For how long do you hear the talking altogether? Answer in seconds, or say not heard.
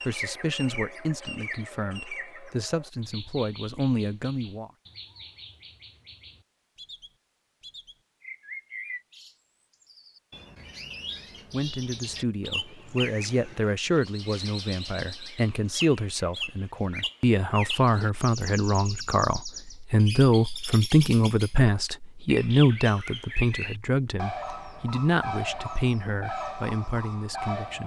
21 s.